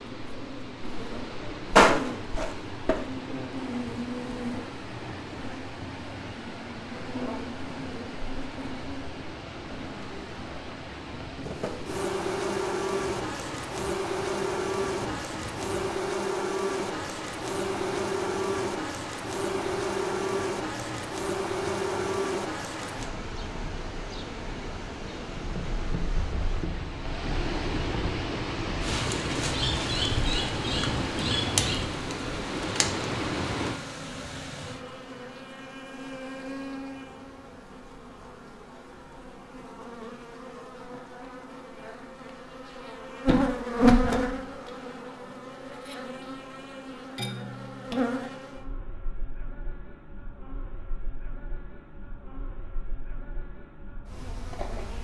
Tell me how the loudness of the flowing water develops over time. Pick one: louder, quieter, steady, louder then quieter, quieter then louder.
louder.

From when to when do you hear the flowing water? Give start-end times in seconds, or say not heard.
0.0-33.8.